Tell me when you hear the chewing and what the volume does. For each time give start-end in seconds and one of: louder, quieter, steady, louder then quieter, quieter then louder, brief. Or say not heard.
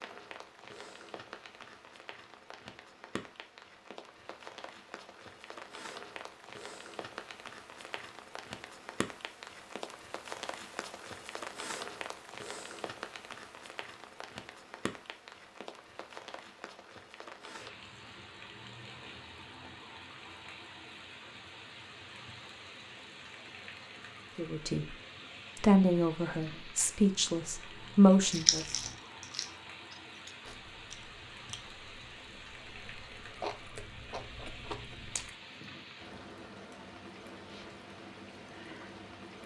28.2-35.3 quieter then louder.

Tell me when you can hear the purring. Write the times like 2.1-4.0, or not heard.
not heard.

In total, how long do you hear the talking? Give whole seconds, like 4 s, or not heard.
4 s.